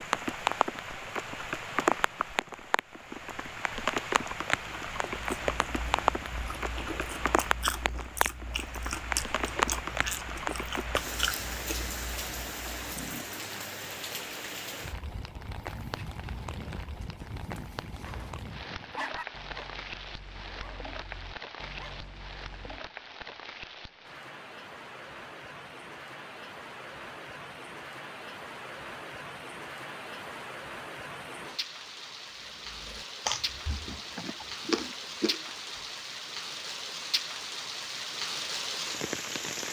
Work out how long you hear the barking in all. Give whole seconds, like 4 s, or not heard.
7 s.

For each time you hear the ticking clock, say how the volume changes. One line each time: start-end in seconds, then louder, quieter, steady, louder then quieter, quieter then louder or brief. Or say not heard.
not heard.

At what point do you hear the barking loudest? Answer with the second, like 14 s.
19 s.